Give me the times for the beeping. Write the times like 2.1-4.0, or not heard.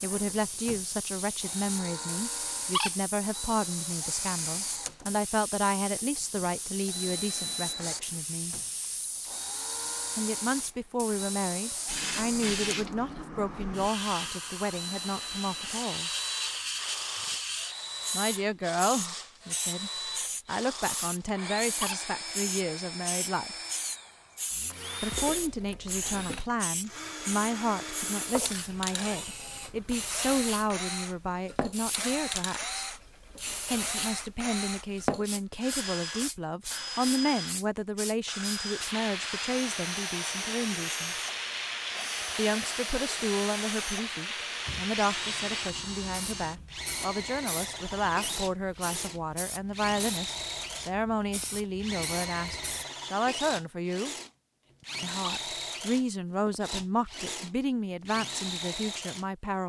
not heard.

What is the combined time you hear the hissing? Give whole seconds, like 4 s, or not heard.
53 s.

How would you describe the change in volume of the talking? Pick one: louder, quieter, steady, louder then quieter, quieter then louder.
steady.